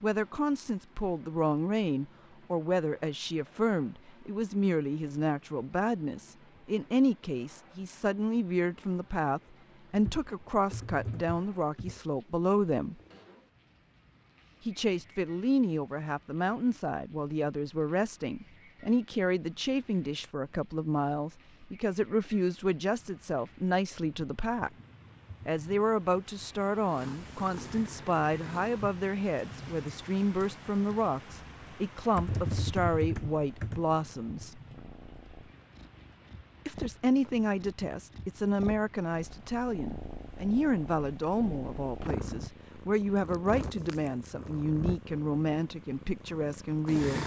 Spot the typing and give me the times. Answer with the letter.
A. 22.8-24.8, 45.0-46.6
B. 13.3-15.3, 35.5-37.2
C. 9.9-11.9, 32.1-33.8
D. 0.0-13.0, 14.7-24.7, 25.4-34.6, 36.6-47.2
C.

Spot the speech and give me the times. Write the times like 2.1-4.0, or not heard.
0.0-13.0, 14.7-24.7, 25.4-34.6, 36.6-47.2.